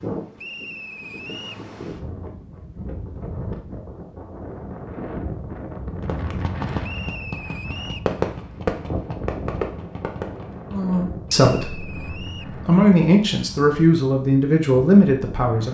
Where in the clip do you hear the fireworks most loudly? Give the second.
8 s.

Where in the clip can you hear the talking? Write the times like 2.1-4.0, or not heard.
10.7-15.6.